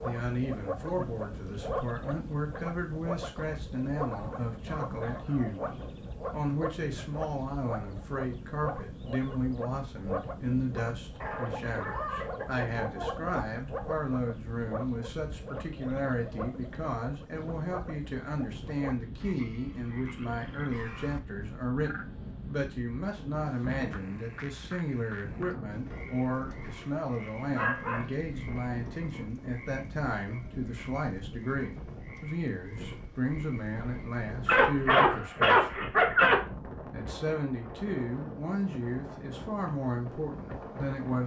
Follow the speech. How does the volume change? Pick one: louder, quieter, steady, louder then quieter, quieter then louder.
steady.